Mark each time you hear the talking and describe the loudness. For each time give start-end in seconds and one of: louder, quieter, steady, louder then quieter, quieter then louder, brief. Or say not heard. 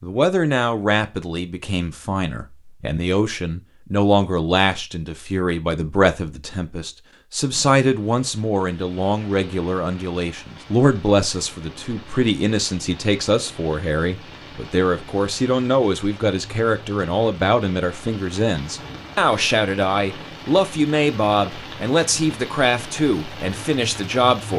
0.0-24.5 steady.